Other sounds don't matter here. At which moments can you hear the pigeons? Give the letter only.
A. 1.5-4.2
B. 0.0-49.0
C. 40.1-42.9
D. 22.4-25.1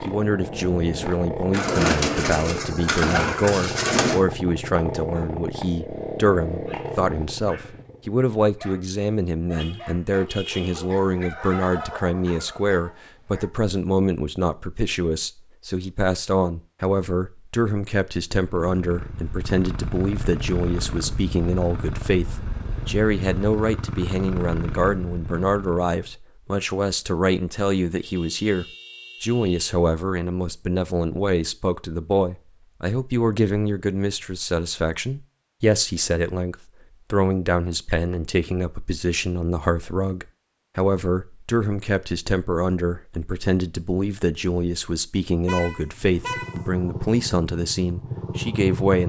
A.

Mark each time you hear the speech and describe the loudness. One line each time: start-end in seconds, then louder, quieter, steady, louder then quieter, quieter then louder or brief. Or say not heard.
0.0-49.0 steady.